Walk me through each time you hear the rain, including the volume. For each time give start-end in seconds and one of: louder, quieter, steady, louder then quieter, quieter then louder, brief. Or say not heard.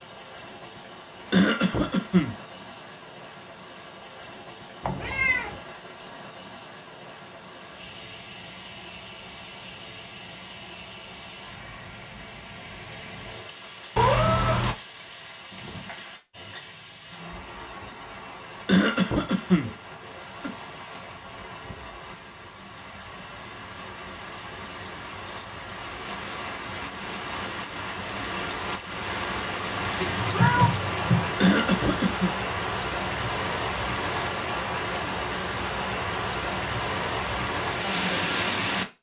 0.0-38.9 louder.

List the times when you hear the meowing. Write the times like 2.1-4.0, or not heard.
4.8-5.6, 13.9-14.8, 29.9-31.3.